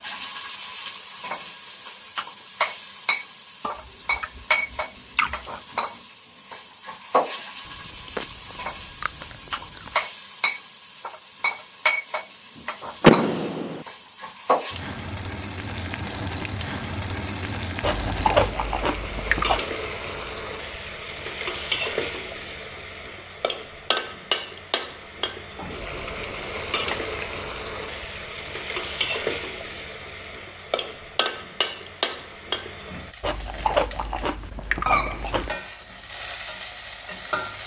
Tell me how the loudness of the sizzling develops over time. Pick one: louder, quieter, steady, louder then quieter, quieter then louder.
steady.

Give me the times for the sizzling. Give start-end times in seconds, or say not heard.
0.0-37.6.